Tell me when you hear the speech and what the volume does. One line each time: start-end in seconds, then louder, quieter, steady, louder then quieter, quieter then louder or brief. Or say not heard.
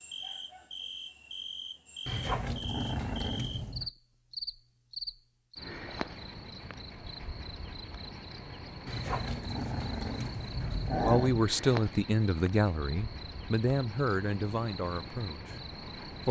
11.0-16.2 quieter.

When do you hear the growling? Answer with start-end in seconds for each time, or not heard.
2.0-3.9, 8.8-11.5.